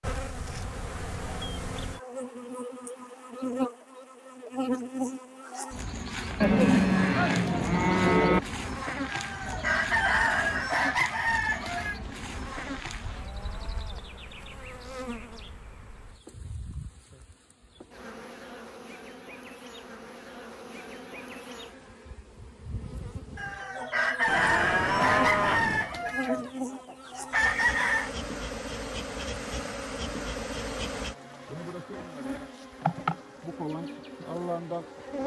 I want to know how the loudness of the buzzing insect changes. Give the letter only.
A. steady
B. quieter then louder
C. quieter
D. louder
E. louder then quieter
B.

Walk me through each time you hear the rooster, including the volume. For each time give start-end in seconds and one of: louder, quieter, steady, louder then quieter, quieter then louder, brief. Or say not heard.
9.1-12.0 brief
23.4-28.1 quieter then louder.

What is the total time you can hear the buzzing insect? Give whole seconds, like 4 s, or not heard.
35 s.